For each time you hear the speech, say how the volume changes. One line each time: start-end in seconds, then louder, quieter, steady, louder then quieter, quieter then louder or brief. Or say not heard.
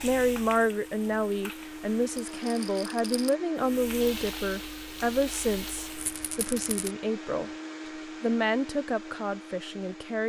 0.0-7.5 quieter
8.2-10.2 brief.